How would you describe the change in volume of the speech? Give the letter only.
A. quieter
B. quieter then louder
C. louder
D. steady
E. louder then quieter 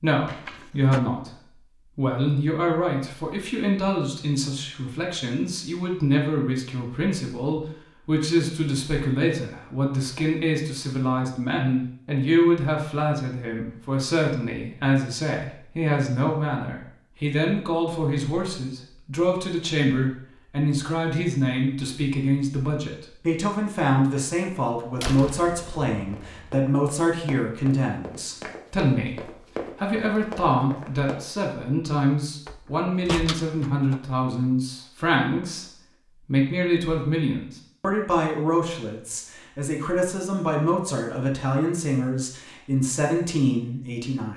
D.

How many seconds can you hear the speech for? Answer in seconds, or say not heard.
44 s.